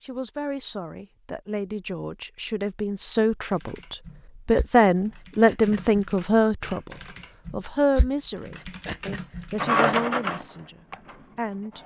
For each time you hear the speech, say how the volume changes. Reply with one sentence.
You can hear the speech from 0.0 to 11.8 s, getting louder then quieter.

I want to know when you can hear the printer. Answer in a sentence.
The printer can be heard from 9.6 to 11.8 s.